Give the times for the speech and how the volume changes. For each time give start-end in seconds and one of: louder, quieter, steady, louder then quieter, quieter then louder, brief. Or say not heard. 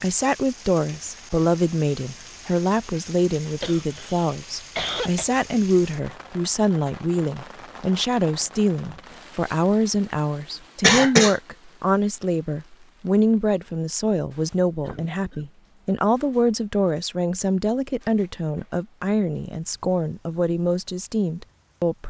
0.0-22.0 steady.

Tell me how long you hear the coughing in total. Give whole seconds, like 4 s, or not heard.
3 s.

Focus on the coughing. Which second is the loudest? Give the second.
11 s.